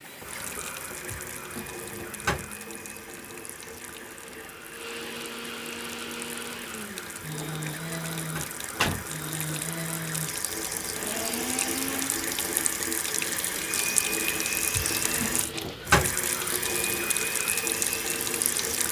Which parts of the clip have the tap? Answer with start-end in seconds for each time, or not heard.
0.0-18.8.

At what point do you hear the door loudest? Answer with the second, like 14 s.
16 s.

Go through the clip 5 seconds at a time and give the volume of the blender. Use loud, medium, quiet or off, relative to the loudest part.
medium, loud, loud, loud.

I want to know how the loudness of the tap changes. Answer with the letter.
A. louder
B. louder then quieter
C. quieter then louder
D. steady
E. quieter
A.